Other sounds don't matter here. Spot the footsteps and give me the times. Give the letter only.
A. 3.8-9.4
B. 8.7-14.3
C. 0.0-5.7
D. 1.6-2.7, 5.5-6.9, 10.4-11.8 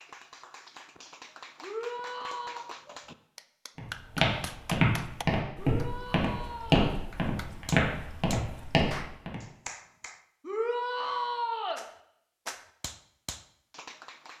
A.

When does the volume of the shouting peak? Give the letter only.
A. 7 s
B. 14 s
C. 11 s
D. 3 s
C.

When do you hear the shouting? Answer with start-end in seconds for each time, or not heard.
1.6-2.7, 5.5-6.9, 10.4-11.8.